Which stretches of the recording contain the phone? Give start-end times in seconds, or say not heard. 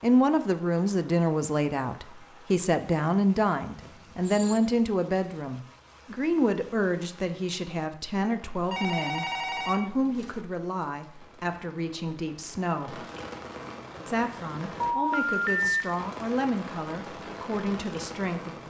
3.8-4.6, 8.7-10.4, 14.8-15.8.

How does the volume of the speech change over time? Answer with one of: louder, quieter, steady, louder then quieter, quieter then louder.
quieter.